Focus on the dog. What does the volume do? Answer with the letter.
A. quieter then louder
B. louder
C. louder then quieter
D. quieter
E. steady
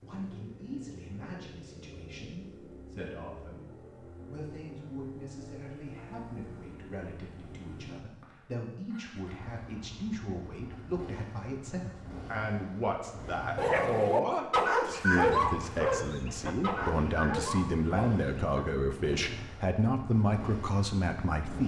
D.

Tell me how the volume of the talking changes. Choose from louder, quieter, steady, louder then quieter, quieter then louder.
louder.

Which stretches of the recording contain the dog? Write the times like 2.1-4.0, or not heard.
13.6-18.6.